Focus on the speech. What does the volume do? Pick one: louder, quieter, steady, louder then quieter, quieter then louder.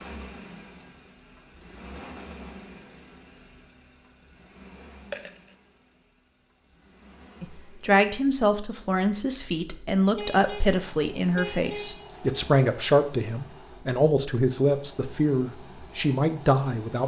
steady.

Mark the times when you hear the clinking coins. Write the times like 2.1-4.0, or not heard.
5.1-5.5.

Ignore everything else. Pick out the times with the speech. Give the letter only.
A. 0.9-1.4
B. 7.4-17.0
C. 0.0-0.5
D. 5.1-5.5
B.